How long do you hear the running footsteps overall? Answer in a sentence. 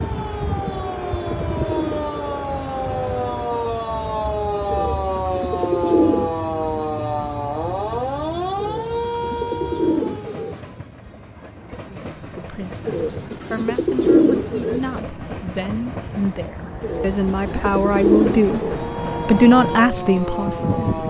The running footsteps can't be heard in this clip.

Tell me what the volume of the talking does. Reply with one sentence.
The loudness of the talking goes up.